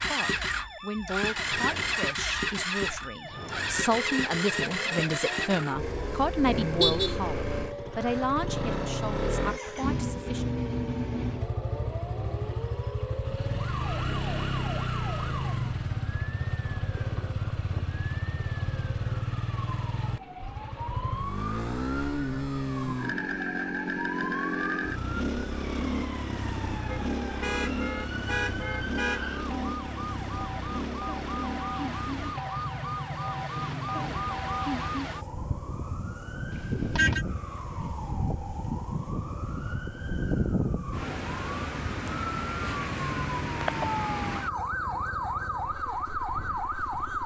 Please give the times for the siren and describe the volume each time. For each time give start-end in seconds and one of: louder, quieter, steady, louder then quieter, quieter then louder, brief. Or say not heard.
0.2-47.2 louder.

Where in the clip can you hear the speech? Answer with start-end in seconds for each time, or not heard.
0.1-10.4.